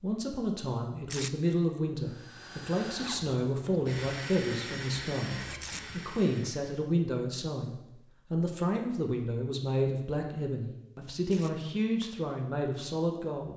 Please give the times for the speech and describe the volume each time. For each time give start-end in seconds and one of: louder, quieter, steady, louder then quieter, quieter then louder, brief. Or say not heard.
0.0-13.5 steady.